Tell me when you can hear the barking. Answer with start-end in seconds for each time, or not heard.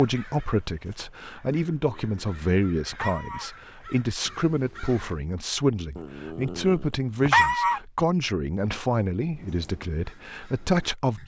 1.8-3.5, 6.0-7.8.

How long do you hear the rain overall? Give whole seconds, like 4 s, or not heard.
not heard.